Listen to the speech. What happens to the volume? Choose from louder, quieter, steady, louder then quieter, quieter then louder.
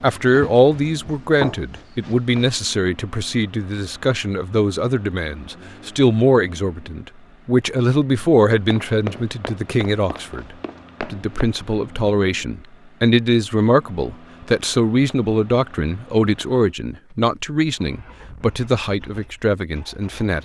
steady.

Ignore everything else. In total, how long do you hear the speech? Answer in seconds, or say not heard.
20 s.